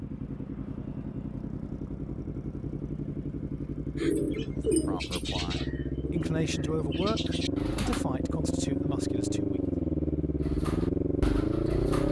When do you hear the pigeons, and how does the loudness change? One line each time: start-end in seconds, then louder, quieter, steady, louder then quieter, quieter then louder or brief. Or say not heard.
4.0-8.1 quieter then louder
10.4-12.0 brief.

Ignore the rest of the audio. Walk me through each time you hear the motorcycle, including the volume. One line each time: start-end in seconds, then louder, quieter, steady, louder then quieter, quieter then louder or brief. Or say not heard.
0.0-12.0 louder.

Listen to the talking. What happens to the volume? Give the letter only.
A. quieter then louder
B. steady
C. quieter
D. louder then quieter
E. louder
D.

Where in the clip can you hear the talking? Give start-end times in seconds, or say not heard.
4.7-9.6.